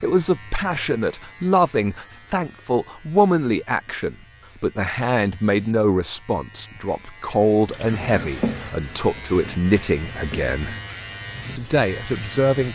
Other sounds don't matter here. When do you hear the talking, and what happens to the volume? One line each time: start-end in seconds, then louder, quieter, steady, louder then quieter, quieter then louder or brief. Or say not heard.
0.0-10.8 steady
11.6-12.7 brief.